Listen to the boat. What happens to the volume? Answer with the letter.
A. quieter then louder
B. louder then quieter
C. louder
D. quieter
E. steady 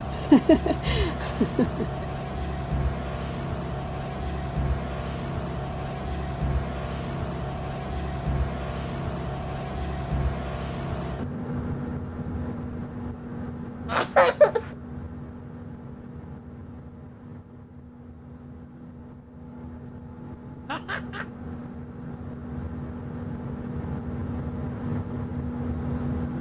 A.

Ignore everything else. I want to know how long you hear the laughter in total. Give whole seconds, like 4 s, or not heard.
3 s.